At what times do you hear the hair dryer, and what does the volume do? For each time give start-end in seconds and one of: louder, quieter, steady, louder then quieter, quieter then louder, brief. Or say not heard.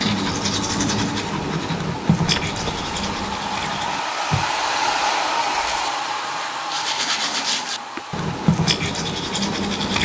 0.1-10.0 louder then quieter.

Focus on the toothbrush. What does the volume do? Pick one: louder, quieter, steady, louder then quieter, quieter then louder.
quieter then louder.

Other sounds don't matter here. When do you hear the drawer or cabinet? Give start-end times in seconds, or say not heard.
2.2-3.4, 6.8-8.1.